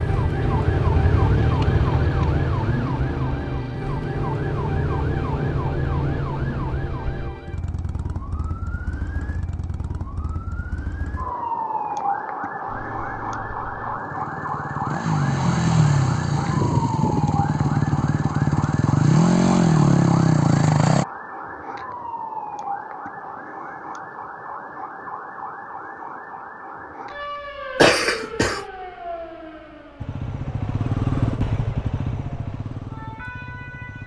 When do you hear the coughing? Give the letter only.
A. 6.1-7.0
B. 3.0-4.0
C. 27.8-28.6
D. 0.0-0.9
C.